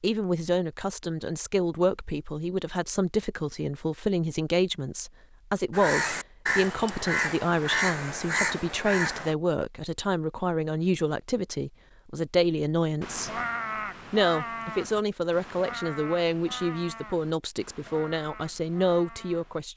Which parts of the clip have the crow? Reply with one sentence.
The crow can be heard from 5.7 to 9.3 s and from 13.0 to 19.6 s.